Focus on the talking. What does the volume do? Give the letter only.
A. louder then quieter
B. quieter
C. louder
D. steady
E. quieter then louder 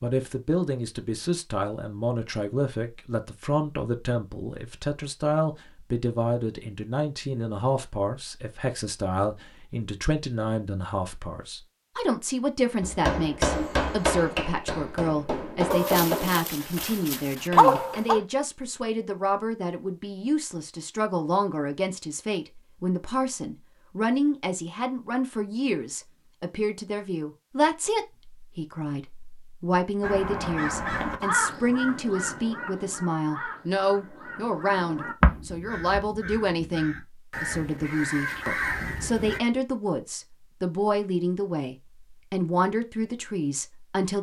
D.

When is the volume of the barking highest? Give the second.
18 s.